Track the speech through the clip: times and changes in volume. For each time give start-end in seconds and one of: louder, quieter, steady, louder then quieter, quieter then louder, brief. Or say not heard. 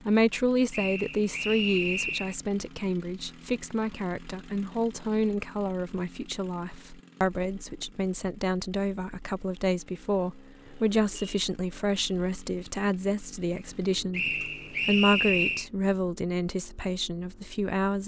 0.1-18.0 steady.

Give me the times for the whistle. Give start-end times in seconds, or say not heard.
0.7-2.4, 14.1-15.7.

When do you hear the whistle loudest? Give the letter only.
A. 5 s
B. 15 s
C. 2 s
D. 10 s
B.